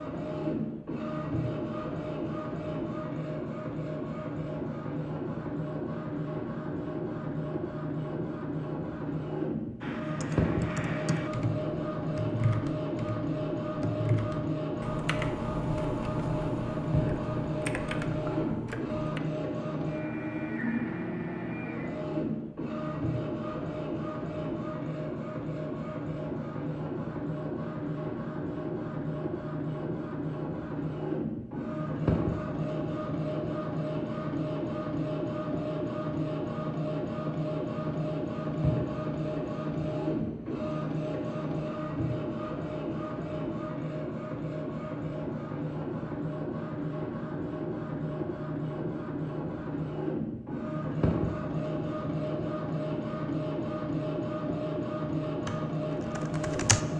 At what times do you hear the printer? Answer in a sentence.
You can hear the printer from 0.0 to 56.9 s.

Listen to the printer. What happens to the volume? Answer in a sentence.
The volume of the printer stays about the same.